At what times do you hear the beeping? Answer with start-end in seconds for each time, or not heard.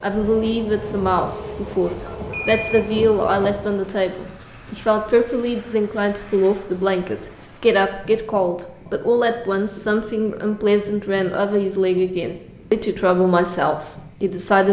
2.3-3.0.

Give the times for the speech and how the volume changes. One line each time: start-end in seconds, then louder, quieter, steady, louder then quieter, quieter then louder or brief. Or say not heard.
0.0-14.6 steady.